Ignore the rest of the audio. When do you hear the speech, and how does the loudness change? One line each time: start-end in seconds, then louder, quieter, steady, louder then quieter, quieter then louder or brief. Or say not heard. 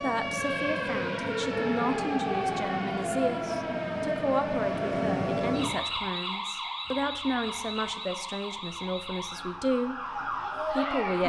0.0-9.9 steady
10.7-11.2 brief.